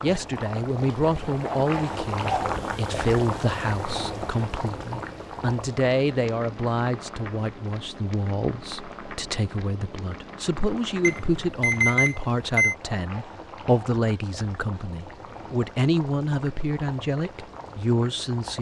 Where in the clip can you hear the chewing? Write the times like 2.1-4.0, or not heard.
not heard.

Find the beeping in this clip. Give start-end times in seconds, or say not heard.
11.0-12.8.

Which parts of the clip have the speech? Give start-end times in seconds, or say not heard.
0.0-18.5.